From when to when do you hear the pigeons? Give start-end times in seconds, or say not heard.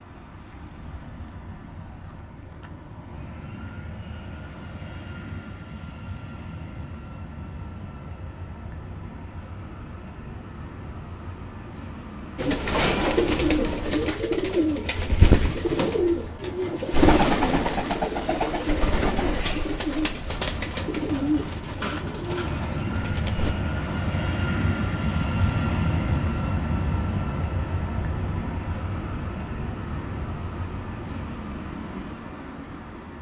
12.3-23.6.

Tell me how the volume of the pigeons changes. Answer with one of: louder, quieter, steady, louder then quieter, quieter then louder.
quieter.